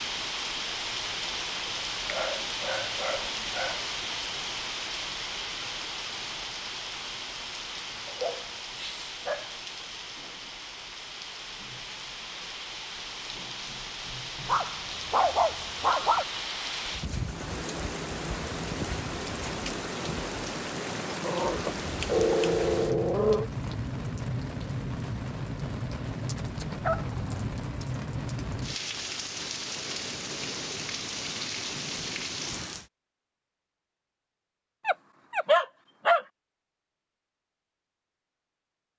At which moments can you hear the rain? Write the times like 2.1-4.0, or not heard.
0.0-32.9.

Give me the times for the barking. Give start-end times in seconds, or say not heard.
2.0-3.9, 8.1-9.6, 14.4-16.2, 21.2-23.5, 26.8-27.4, 34.9-36.2.